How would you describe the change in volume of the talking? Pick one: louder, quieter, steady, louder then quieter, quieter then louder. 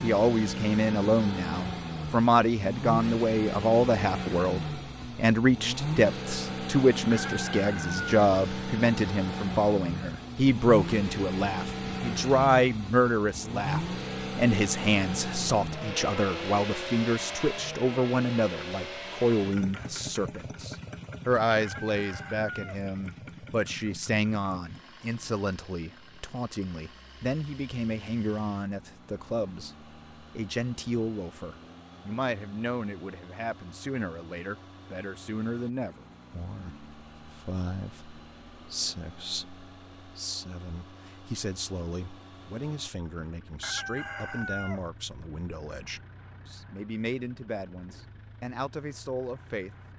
quieter.